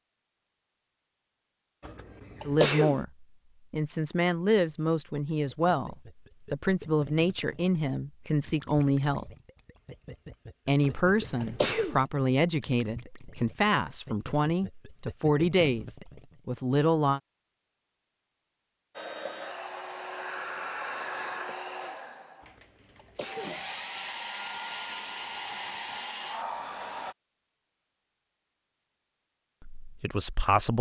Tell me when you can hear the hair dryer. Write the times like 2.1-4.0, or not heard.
18.9-27.1.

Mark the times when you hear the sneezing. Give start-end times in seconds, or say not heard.
1.8-3.0, 10.8-12.0, 22.4-23.6.